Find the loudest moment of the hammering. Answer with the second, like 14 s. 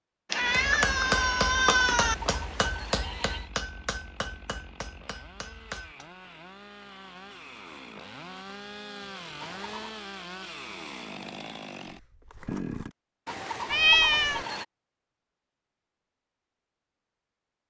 1 s.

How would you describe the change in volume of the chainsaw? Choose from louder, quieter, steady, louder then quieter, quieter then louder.
louder.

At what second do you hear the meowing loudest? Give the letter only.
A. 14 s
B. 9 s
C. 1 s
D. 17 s
A.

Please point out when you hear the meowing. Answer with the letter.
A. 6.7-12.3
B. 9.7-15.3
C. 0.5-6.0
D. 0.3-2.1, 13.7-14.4
D.